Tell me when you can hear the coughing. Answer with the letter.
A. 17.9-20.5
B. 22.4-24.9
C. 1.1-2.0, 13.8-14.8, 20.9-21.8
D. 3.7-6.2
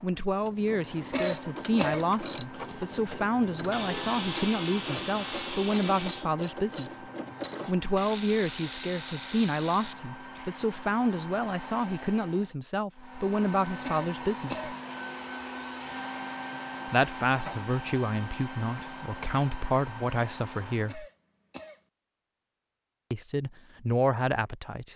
C.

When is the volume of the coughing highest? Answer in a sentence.
The volume of the coughing peaks at 2 seconds.